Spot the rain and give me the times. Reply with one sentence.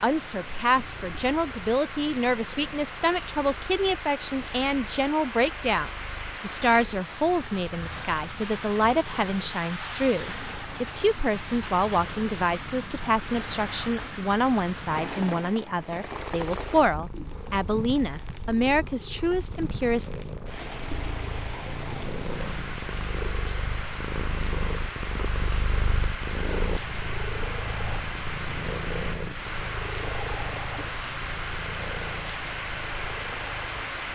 You can hear the rain from 0.0 to 34.1 s.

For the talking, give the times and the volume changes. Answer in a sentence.
You can hear the talking from 0.0 to 20.1 s, at a steady volume.